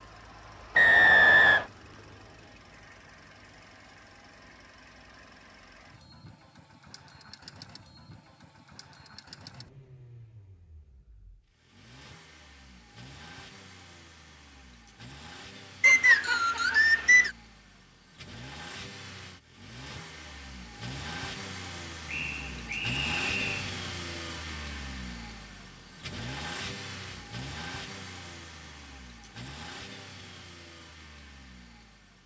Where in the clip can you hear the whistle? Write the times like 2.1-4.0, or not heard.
0.8-1.6, 15.8-17.3, 22.1-23.7.